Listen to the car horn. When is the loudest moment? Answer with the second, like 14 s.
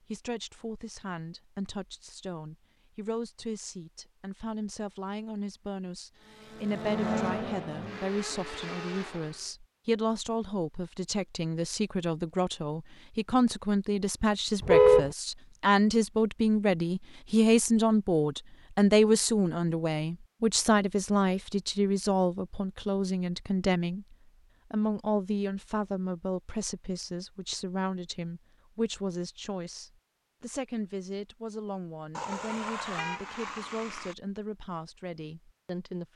15 s.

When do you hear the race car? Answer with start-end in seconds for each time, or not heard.
6.2-9.6.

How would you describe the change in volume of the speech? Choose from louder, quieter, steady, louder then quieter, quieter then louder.
louder then quieter.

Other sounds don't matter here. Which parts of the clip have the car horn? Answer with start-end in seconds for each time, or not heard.
14.6-15.1, 32.1-34.1.